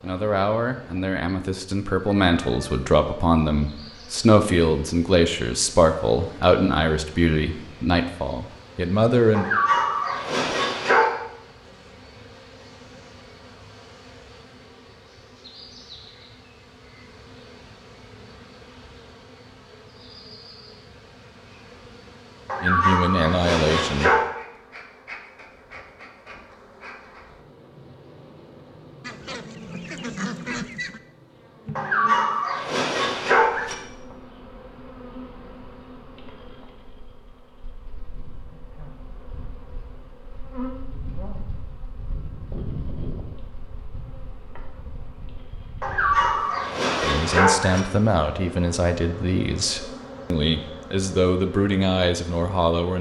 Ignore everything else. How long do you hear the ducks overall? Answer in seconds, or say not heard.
2 s.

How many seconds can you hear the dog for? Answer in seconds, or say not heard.
8 s.